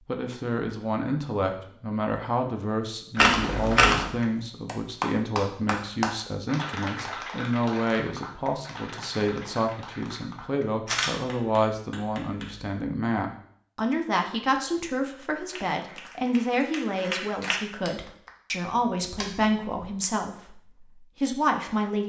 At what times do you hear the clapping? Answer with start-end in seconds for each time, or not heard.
3.1-12.7, 15.4-18.3.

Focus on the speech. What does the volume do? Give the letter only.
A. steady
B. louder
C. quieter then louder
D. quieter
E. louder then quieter
A.